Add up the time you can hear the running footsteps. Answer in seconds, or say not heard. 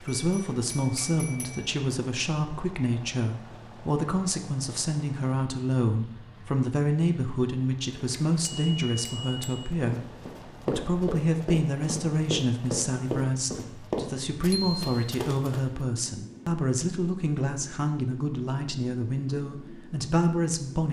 6 s.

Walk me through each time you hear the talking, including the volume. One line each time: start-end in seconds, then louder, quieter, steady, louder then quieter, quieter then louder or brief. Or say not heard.
0.0-20.8 steady.